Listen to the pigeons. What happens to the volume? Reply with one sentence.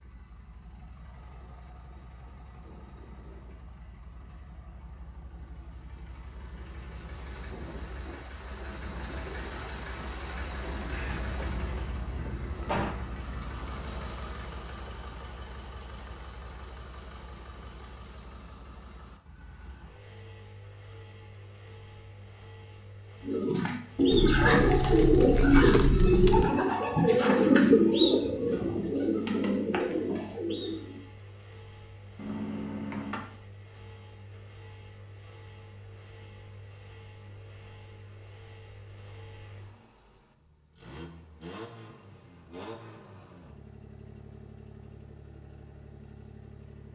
The volume of the pigeons goes down.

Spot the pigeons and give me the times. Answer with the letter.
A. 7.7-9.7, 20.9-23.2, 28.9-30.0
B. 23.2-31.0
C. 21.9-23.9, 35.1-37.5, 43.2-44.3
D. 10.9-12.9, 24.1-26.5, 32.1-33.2
B.